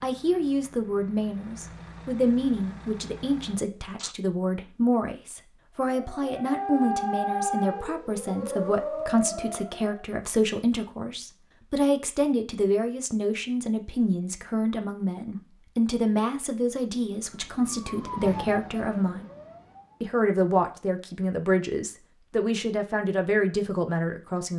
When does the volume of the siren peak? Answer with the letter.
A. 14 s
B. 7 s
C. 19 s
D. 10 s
B.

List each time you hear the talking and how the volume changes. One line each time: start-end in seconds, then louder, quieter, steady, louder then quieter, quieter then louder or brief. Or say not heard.
0.0-19.2 steady
20.0-24.5 steady.